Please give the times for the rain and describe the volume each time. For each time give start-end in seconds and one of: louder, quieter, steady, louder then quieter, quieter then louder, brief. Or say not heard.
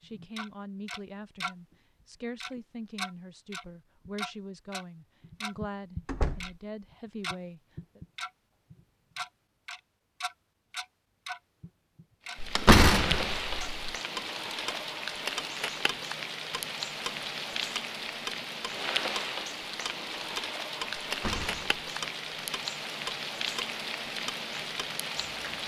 12.2-25.6 steady.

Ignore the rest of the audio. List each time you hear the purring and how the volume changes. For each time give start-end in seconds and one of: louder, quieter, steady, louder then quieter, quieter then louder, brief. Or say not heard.
not heard.